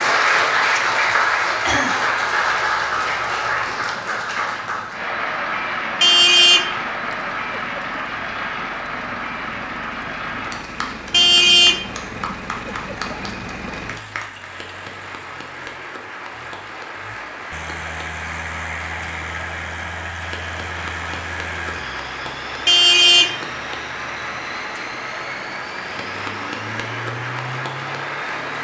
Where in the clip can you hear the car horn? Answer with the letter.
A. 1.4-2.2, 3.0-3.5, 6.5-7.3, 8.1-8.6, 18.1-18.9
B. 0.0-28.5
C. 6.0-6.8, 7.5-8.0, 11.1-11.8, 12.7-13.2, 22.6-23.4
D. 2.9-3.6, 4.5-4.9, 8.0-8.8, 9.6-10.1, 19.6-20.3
C.